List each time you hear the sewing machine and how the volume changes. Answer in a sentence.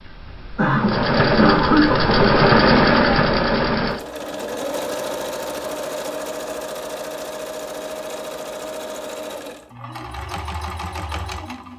You can hear the sewing machine from 0.0 to 11.7 s, getting quieter.